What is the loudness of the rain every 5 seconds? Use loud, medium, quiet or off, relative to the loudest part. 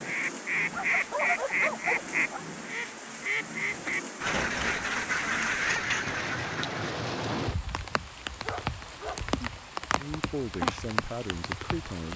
medium, loud, loud.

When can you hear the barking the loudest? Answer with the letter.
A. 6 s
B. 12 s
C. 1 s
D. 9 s
C.